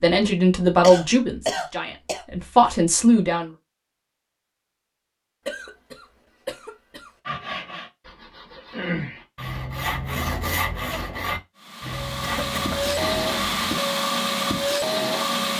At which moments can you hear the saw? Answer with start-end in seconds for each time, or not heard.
7.2-13.7.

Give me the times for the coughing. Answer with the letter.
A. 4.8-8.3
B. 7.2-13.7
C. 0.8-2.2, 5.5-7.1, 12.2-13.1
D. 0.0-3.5
C.